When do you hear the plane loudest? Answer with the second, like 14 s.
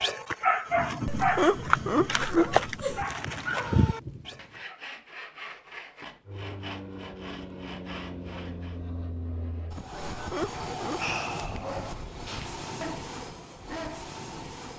11 s.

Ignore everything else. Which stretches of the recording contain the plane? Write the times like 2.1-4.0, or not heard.
6.2-14.7.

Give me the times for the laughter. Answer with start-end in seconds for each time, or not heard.
1.1-3.0, 10.1-11.0.